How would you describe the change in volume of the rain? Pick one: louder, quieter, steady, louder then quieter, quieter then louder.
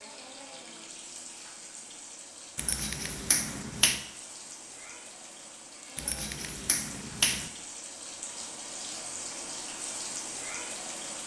louder.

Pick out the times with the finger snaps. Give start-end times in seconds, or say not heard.
2.5-4.0, 6.0-7.5.